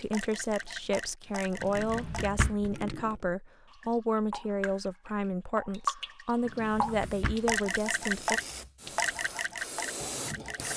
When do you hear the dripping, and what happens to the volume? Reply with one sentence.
The dripping can be heard from 0.0 to 10.7 s, getting louder.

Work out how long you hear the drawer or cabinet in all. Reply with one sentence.
You can hear the drawer or cabinet for 2 seconds altogether.